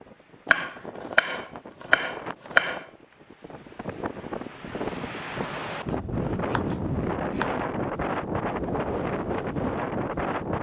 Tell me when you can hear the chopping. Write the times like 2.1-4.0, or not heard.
0.5-2.9, 5.8-7.5.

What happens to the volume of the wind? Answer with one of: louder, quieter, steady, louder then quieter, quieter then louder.
louder.